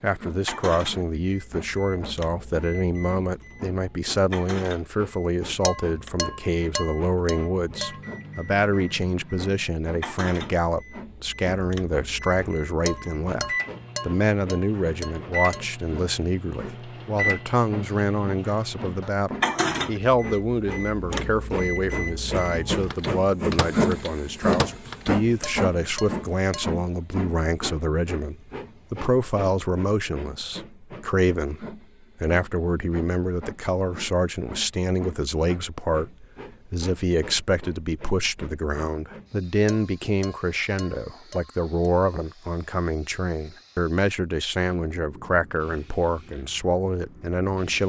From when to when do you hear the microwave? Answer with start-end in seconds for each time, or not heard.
0.5-25.1.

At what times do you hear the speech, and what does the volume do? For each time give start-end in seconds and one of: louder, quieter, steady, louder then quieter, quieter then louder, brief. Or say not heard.
0.0-47.8 steady.